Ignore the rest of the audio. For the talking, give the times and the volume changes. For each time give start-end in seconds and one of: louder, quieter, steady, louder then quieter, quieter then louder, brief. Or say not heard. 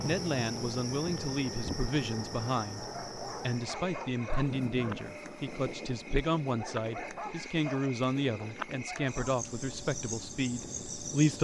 0.0-11.3 steady.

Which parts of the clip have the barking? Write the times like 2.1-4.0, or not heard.
2.8-5.1, 6.5-9.3.